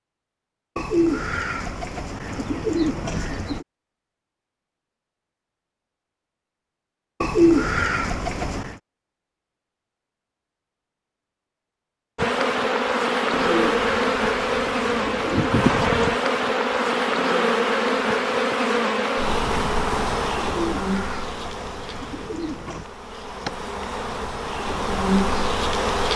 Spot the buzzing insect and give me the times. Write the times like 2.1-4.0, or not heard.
12.2-26.1.